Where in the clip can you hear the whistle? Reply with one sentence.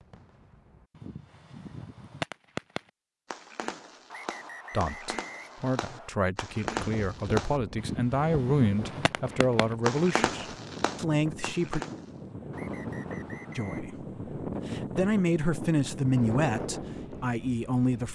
The whistle can be heard from 4.1 to 6.1 s and from 12.5 to 13.8 s.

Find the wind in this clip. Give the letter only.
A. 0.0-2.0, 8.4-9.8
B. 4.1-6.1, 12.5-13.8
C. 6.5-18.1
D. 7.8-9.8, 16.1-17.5
C.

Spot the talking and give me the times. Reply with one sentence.
You can hear the talking from 4.7 to 11.8 s and from 13.6 to 18.1 s.